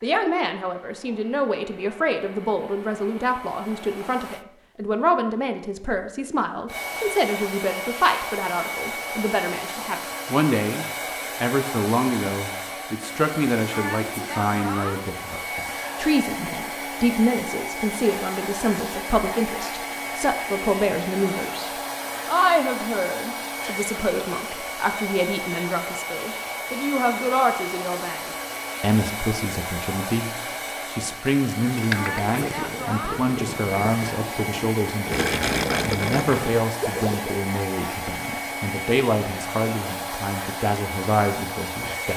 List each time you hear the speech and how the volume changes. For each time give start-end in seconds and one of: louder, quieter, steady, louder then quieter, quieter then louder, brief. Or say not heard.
0.0-42.1 steady.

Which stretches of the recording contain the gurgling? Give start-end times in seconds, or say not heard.
31.8-37.4.